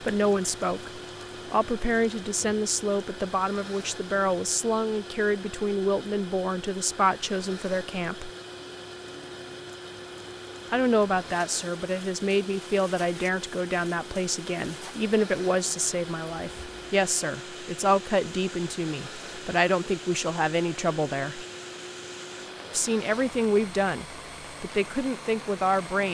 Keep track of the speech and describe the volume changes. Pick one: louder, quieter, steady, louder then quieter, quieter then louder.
steady.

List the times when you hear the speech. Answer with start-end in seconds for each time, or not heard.
0.0-8.3, 10.7-21.4, 22.7-26.0.